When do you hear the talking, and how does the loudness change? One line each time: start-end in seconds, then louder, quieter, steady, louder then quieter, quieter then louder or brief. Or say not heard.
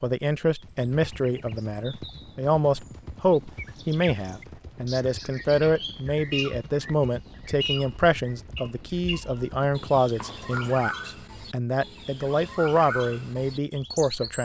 0.0-14.3 steady.